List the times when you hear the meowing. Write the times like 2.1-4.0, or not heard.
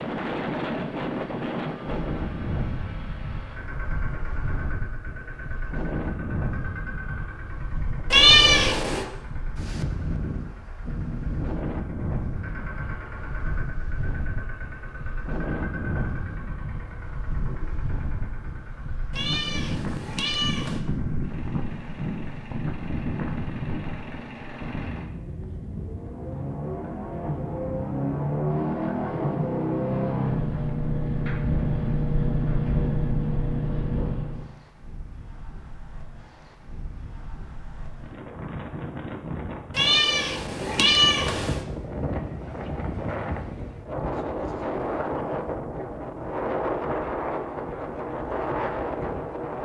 8.1-9.1, 19.1-20.8, 39.8-41.5.